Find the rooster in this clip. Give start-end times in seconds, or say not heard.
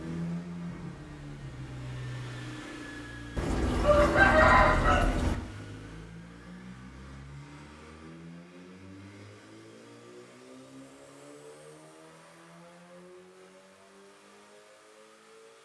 3.4-5.4.